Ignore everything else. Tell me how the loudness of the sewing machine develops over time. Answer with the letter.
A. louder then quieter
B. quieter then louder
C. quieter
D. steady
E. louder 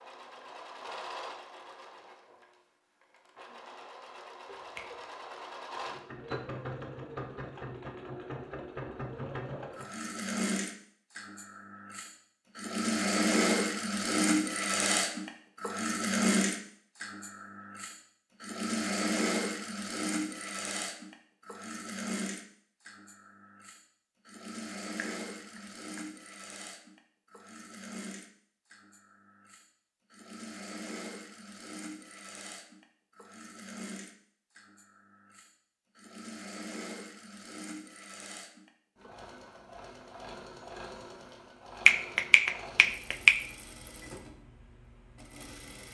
A.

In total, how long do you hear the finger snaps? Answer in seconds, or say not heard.
3 s.